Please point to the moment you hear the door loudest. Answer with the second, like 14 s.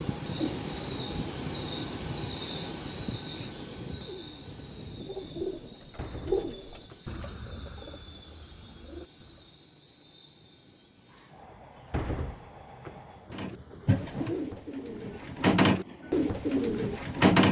12 s.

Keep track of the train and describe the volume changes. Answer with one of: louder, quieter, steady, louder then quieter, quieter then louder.
quieter.